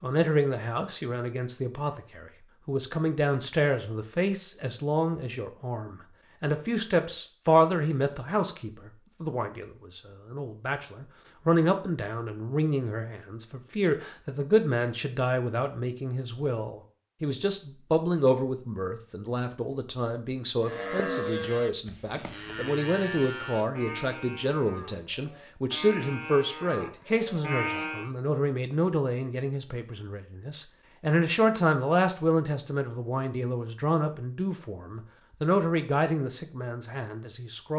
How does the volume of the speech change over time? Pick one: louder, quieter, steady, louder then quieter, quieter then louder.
steady.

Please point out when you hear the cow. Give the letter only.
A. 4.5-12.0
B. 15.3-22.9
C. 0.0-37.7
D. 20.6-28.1
D.